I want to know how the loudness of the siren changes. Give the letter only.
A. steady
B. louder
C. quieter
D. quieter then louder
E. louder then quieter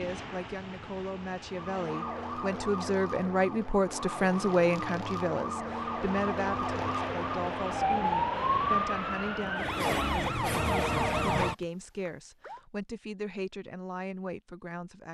B.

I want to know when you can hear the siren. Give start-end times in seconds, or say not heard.
1.4-12.6.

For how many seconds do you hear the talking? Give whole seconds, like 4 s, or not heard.
15 s.